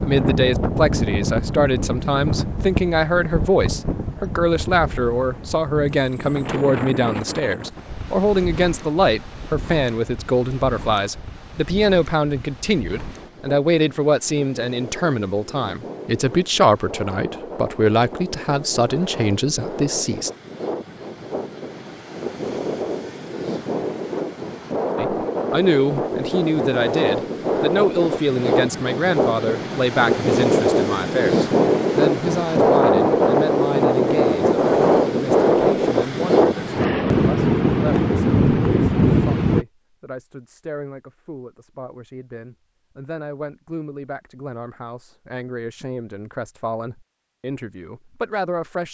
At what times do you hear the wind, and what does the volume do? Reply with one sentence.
You can hear the wind from 0.0 to 39.6 s, getting quieter then louder.